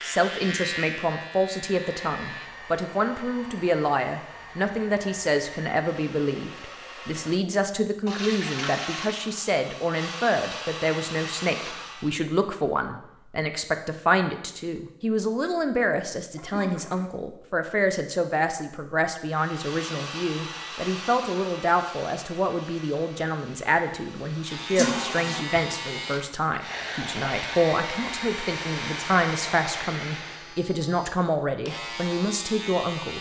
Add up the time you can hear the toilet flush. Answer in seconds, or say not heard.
3 s.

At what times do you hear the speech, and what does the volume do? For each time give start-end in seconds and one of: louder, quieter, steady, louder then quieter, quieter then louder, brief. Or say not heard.
0.0-33.1 steady.